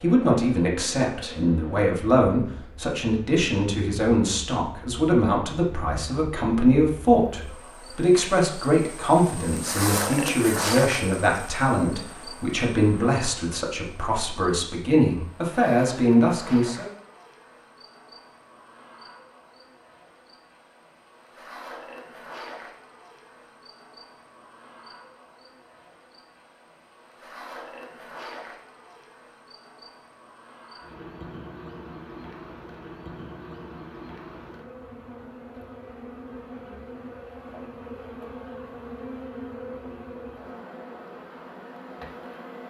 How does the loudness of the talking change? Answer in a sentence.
The loudness of the talking stays about the same.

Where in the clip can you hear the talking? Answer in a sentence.
The talking can be heard from 0.0 to 16.9 s.